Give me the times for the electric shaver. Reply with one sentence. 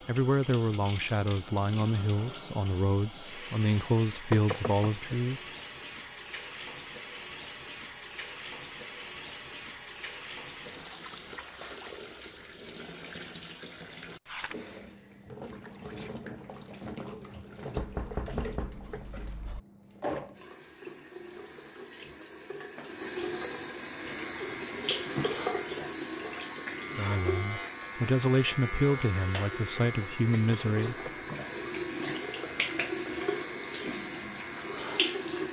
You can hear the electric shaver from 23.9 to 35.4 s.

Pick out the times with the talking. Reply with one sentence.
You can hear the talking from 0.1 to 5.5 s and from 26.9 to 31.1 s.